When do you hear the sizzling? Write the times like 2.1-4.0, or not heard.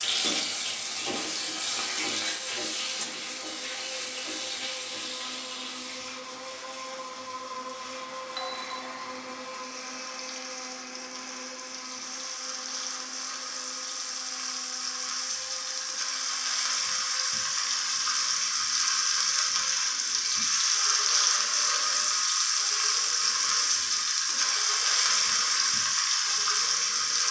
0.0-27.2.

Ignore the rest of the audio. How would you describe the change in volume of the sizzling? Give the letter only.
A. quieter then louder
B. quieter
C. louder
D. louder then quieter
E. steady
A.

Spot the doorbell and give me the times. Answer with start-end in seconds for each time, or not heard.
8.3-9.1.